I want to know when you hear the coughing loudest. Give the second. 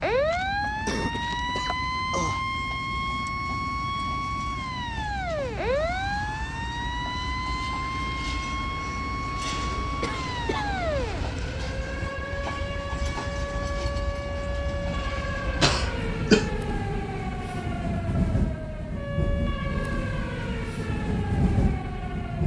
16 s.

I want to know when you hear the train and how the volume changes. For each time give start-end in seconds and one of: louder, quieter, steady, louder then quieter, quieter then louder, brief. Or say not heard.
0.0-22.4 louder.